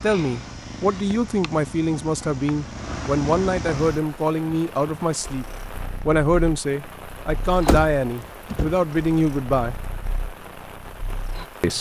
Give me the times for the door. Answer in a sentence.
The door can be heard from 7.7 to 8.8 s.